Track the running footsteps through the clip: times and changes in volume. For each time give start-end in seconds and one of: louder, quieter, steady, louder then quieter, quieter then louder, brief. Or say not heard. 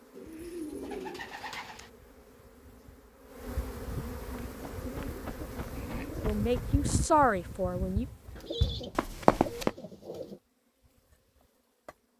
4.5-9.7 quieter then louder.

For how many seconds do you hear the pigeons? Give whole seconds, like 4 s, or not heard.
6 s.